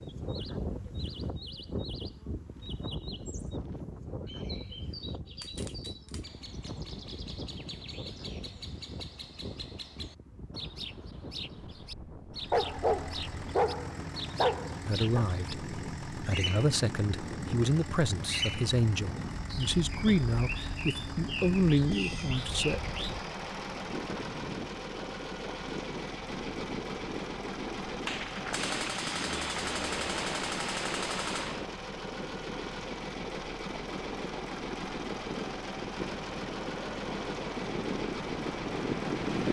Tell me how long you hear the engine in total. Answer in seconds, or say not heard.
27 s.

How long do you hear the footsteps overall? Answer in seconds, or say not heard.
not heard.